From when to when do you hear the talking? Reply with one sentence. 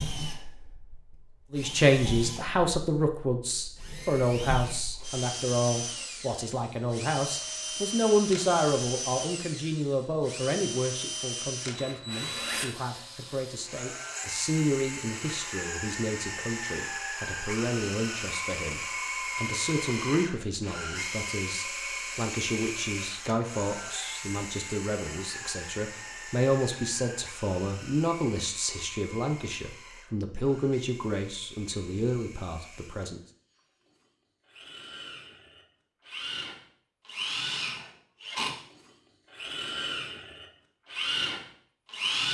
You can hear the talking from 1.5 to 33.2 s.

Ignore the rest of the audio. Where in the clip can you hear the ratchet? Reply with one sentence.
The ratchet can't be heard in this clip.